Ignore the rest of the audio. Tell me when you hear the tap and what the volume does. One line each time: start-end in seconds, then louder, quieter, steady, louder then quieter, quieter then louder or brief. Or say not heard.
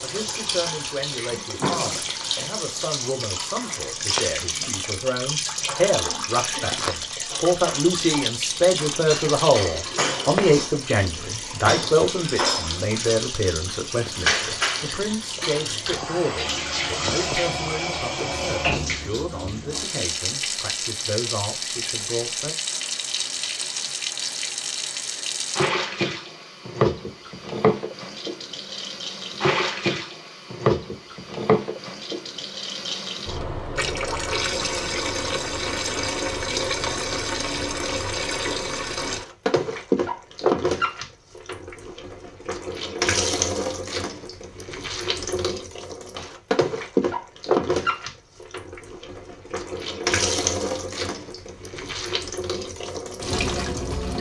0.0-54.1 steady.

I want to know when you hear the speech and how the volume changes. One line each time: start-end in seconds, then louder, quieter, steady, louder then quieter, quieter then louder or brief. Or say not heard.
0.0-22.6 louder then quieter.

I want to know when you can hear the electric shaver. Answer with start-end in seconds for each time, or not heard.
not heard.